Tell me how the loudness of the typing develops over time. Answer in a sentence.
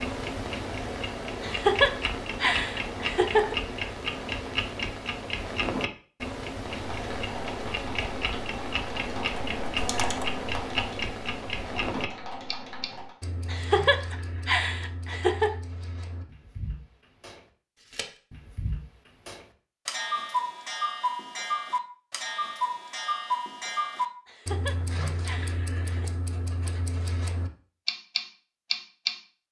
The volume of the typing goes up, then down.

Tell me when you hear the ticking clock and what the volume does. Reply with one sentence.
You can hear the ticking clock from 0.0 to 29.2 s, getting quieter then louder.